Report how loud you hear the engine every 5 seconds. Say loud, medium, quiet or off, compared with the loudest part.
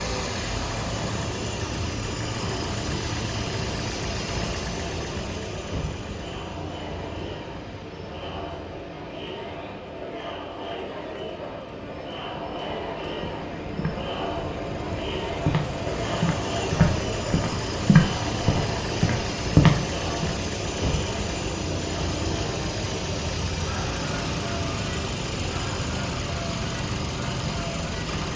loud, medium, medium, loud, loud, loud.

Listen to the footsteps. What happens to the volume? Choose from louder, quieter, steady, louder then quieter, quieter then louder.
louder.